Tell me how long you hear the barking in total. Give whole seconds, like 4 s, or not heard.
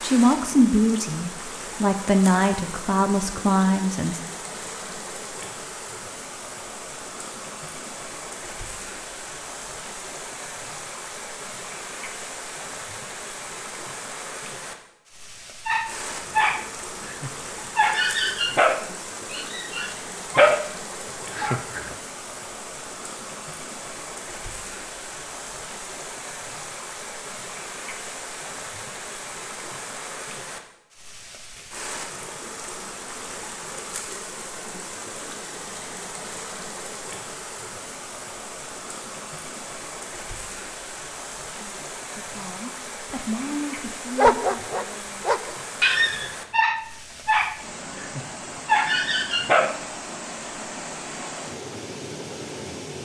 12 s.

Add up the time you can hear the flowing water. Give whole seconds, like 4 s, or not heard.
53 s.